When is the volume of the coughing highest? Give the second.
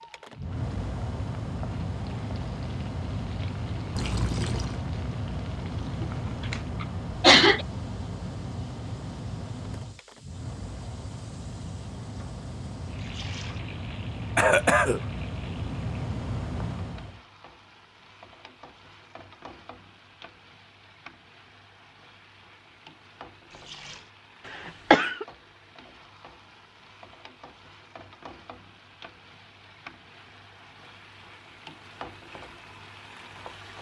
7 s.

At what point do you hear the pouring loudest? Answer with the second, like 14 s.
4 s.